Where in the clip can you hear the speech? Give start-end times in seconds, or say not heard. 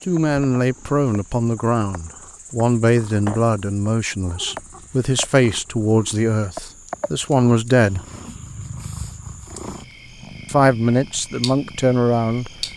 0.0-8.0, 10.4-12.5.